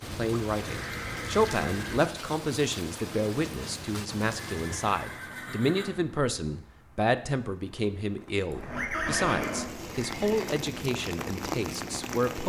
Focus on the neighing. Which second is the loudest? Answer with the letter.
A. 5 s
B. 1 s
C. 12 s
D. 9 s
D.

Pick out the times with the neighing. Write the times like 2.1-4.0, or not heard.
0.0-2.0, 4.5-5.9, 8.5-10.6.